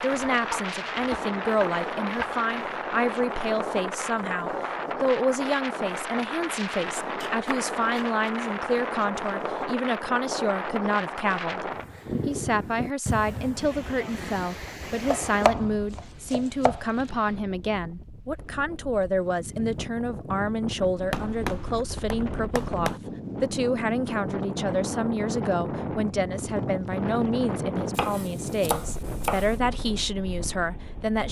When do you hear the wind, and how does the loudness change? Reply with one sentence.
You can hear the wind from 0.0 to 31.2 s, getting quieter then louder.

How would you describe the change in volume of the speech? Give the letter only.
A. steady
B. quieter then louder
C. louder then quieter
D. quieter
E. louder
A.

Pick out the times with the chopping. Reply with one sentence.
The chopping can be heard from 0.1 to 2.6 s, from 6.8 to 8.3 s, from 15.1 to 17.1 s, from 21.1 to 23.0 s and from 27.9 to 29.6 s.